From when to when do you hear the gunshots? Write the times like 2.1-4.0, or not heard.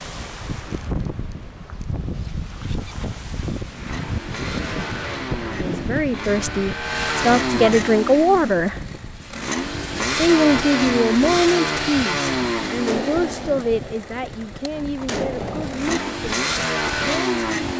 12.8-15.9.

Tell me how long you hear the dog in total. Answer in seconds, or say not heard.
not heard.